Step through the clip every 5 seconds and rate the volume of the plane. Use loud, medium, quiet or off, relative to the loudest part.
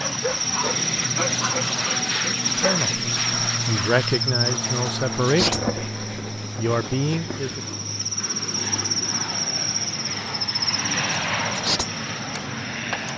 loud, medium, loud.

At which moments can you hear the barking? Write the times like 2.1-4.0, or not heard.
0.0-3.0.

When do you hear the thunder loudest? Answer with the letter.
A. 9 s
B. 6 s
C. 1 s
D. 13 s
B.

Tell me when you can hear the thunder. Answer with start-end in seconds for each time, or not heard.
5.4-7.8.